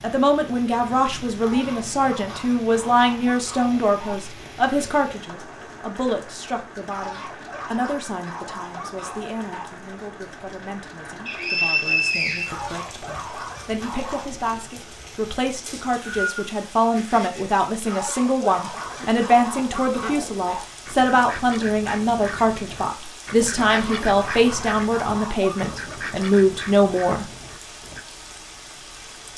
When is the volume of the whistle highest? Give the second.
12 s.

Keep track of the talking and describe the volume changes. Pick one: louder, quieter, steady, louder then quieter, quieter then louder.
quieter then louder.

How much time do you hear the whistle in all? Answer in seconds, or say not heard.
2 s.